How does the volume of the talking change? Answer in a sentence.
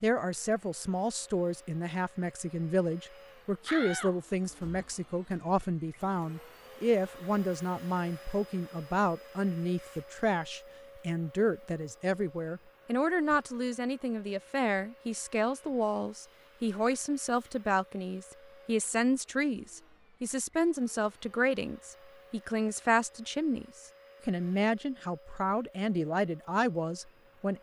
The volume of the talking stays about the same.